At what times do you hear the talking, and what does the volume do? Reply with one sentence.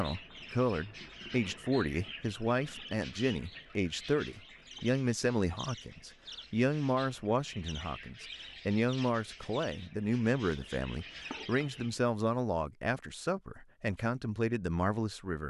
You can hear the talking from 0.0 to 15.4 s, at a steady volume.